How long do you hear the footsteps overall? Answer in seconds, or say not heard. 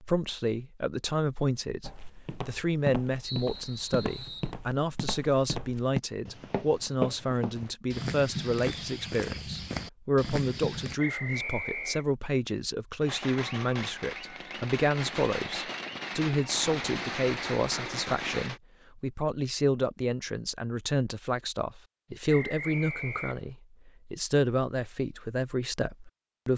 9 s.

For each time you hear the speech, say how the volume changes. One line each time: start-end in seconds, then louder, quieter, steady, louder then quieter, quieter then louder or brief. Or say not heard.
0.0-26.5 steady.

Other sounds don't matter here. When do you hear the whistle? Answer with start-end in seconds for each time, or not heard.
3.2-4.5, 10.9-12.1, 22.2-23.4.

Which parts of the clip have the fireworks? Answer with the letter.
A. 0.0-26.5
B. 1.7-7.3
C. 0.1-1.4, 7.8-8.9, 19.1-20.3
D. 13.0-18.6
D.